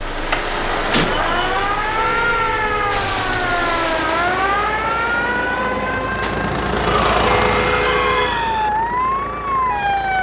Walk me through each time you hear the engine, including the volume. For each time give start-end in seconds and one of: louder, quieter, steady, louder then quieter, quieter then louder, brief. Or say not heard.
0.0-10.1 louder then quieter.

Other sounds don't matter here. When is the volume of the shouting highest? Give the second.
7 s.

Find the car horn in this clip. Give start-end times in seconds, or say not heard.
1.9-3.0, 7.2-8.4.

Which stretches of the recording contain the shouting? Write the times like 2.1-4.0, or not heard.
1.1-1.9, 6.7-8.7.